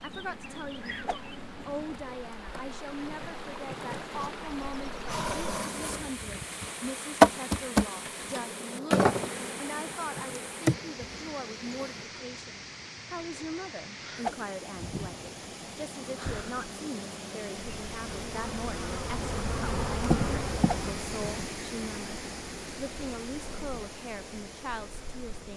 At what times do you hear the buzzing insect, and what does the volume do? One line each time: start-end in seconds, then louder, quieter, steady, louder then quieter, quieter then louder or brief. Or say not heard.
0.0-12.1 louder then quieter
14.8-25.5 louder then quieter.